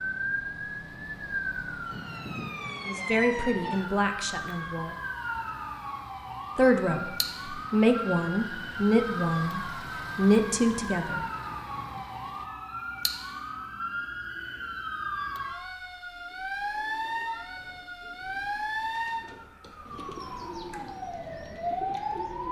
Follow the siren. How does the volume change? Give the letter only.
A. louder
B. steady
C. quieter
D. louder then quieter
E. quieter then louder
B.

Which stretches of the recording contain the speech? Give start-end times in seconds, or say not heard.
2.9-5.0, 6.5-11.2.